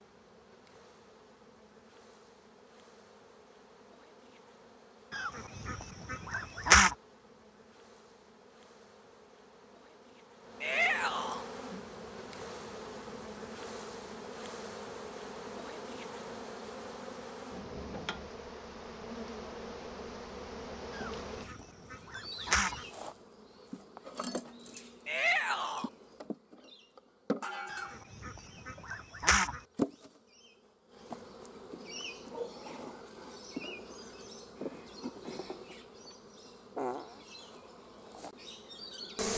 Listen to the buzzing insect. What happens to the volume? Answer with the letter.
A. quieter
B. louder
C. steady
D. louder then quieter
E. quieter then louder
B.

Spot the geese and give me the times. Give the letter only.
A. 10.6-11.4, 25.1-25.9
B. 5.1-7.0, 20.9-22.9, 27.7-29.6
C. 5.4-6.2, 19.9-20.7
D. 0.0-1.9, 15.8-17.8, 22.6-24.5
B.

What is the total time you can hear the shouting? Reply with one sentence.
You can hear the shouting for 2 seconds altogether.